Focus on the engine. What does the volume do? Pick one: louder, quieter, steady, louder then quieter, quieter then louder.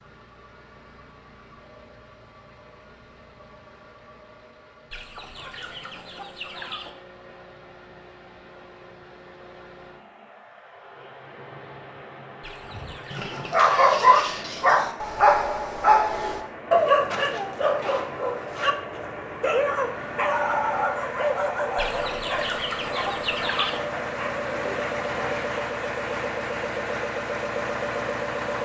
louder.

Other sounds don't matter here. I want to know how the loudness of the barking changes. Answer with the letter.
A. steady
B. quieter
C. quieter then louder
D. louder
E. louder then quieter
B.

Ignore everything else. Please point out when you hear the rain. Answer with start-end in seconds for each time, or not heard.
not heard.